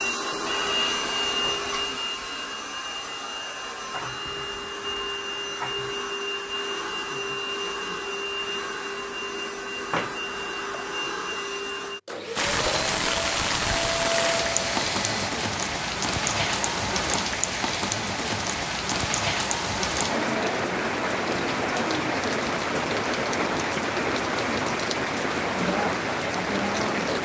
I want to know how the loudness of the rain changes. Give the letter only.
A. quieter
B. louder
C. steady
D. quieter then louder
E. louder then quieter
C.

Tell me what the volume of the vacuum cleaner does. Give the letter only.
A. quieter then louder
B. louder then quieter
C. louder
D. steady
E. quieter
D.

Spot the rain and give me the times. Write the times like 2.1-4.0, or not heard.
12.3-27.2.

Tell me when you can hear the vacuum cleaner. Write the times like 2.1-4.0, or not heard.
0.0-15.3.